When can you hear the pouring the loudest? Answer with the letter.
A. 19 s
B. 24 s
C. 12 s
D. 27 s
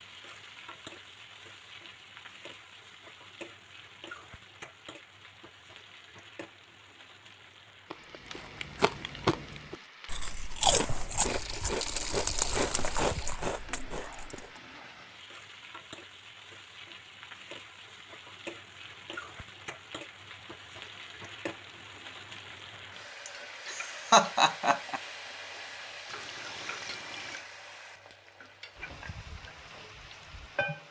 C.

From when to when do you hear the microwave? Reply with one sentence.
You can't hear the microwave here.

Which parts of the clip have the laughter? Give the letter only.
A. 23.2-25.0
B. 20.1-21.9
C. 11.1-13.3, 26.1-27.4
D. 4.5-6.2
A.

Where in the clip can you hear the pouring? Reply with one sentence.
You can hear the pouring from 11.1 to 13.3 s and from 26.1 to 27.4 s.